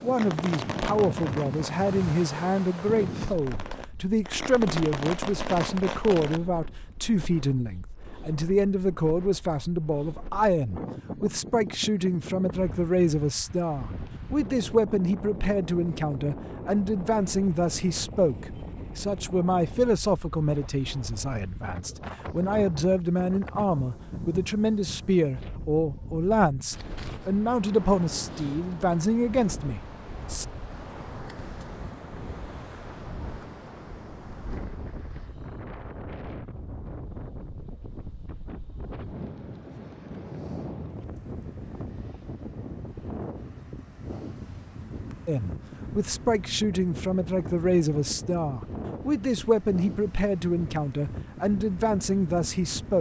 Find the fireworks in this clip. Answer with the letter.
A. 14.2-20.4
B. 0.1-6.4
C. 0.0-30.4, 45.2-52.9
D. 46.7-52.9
B.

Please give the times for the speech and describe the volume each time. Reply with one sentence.
You can hear the speech from 0.0 to 30.4 s, at a steady volume; and from 45.2 to 52.9 s, at a steady volume.